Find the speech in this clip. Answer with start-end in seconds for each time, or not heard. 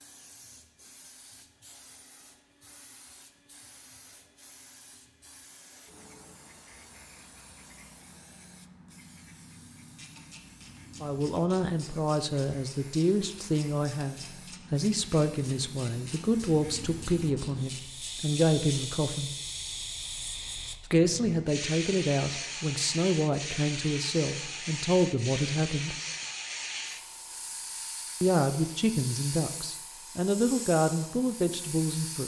11.0-19.3, 20.9-25.9, 28.2-32.2.